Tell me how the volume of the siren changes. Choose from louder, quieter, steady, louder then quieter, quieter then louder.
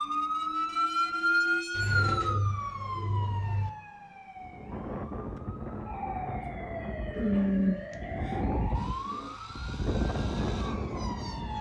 quieter.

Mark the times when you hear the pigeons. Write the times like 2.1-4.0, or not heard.
1.8-3.7, 7.1-9.3.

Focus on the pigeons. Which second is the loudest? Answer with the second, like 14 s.
8 s.